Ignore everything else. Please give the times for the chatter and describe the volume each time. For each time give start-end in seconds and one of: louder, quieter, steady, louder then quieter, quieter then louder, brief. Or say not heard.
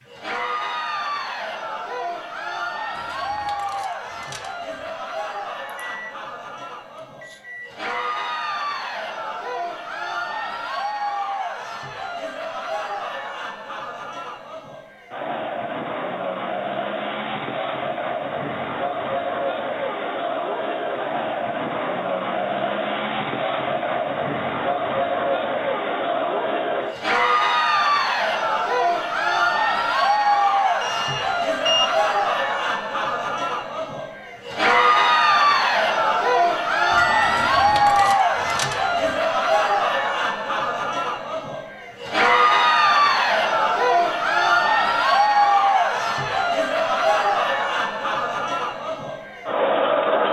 0.0-50.2 louder.